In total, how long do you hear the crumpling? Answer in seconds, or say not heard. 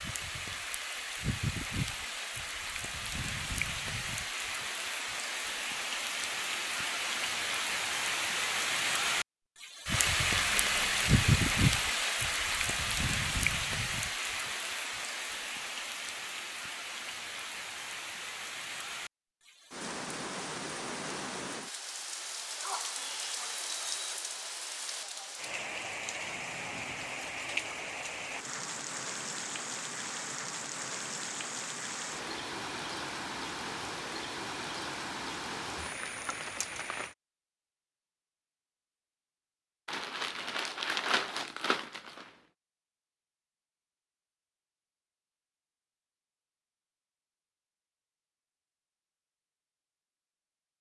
4 s.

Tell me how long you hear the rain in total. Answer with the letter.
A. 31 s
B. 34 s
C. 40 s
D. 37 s
D.